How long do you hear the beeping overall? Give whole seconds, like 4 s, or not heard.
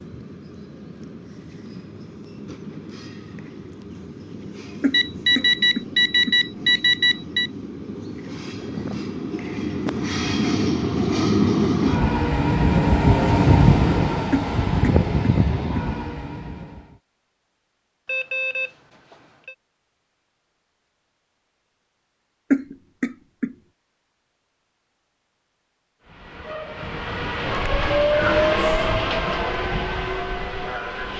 4 s.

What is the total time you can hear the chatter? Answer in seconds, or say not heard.
not heard.